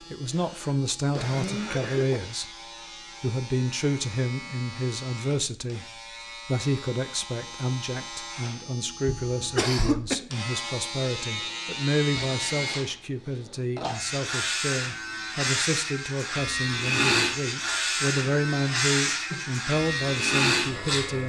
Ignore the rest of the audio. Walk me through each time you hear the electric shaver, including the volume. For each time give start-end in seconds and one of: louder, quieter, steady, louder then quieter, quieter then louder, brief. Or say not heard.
0.0-21.2 louder.